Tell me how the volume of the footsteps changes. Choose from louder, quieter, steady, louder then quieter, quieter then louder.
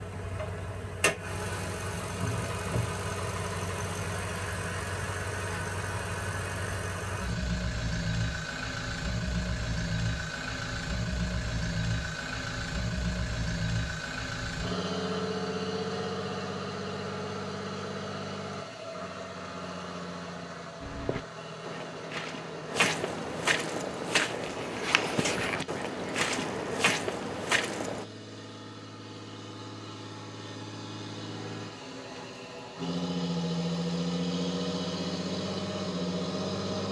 louder.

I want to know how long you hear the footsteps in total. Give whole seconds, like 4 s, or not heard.
7 s.